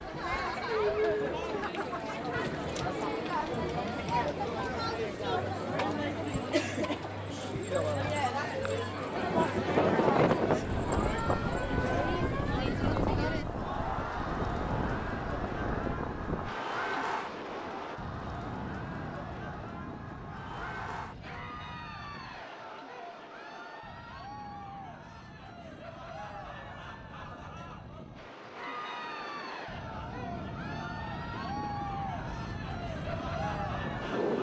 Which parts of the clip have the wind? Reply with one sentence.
You can hear the wind from 9.1 to 34.3 s.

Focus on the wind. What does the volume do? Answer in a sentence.
The loudness of the wind goes down, then up.